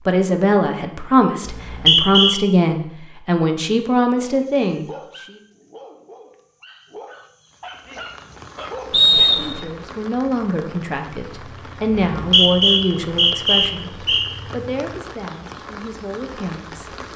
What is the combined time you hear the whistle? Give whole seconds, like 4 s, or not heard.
4 s.